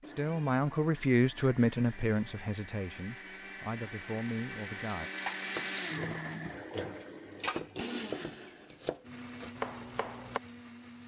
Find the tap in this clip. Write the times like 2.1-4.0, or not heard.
2.9-7.8.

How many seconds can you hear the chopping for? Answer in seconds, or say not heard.
5 s.